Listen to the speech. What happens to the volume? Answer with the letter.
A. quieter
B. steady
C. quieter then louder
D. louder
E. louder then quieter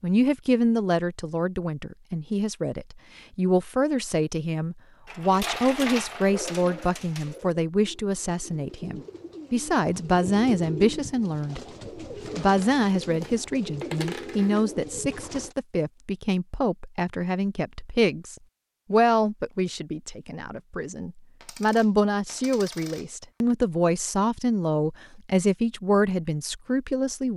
B.